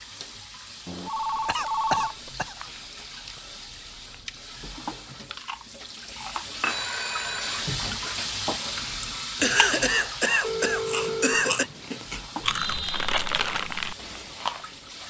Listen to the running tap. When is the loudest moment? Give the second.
8 s.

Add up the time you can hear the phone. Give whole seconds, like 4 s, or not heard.
4 s.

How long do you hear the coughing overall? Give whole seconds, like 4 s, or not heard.
4 s.